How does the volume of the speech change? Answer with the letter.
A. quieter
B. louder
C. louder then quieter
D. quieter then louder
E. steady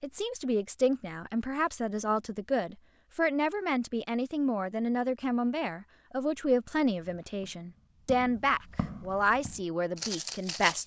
E.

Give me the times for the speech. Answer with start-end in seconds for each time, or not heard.
0.0-10.8.